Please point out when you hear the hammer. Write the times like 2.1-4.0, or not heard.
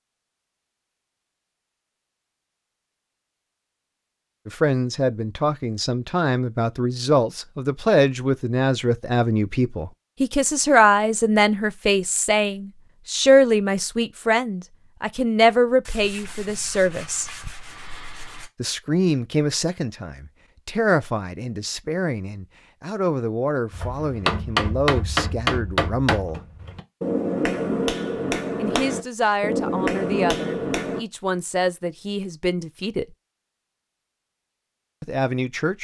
23.7-31.0.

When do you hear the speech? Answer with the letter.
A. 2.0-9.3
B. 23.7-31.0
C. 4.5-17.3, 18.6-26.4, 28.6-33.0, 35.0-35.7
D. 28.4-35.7
C.